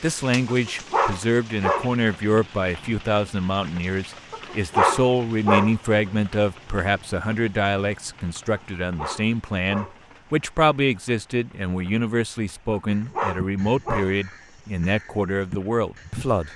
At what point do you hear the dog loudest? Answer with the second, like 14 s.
5 s.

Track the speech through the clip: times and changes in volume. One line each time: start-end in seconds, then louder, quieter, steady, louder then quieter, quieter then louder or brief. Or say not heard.
0.0-16.5 steady.